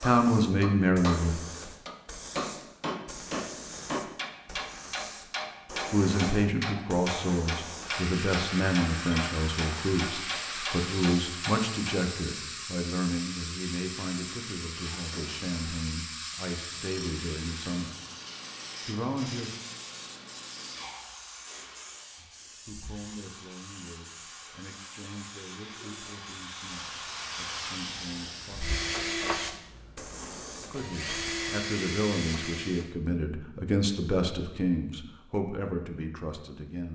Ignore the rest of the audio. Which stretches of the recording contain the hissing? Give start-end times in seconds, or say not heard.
0.0-31.4.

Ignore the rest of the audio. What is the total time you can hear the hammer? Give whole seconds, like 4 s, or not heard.
12 s.